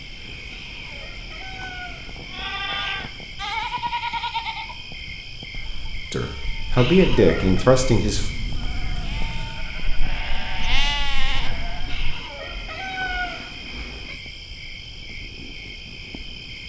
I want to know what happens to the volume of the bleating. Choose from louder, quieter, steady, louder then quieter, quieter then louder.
quieter then louder.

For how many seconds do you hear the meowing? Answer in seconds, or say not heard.
6 s.